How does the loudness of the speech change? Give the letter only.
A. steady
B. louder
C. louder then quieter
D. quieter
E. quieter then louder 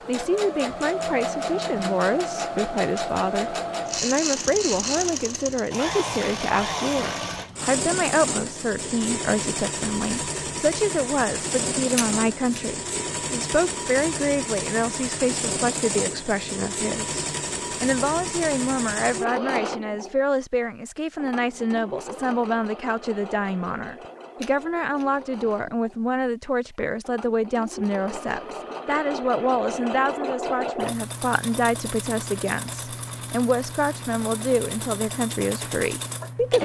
A.